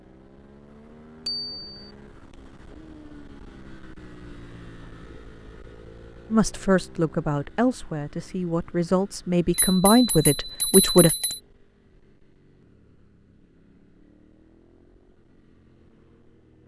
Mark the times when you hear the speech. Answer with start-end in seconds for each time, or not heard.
6.3-11.2.